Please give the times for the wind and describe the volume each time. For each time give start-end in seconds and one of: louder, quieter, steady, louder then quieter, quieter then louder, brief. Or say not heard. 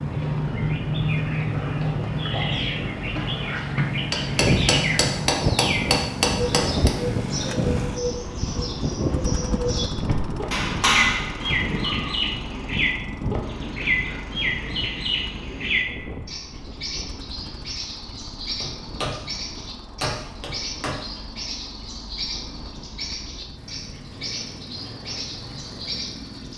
4.2-26.5 quieter.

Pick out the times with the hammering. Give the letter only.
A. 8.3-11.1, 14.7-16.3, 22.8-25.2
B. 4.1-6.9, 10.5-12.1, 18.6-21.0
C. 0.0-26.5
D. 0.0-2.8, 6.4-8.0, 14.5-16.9
B.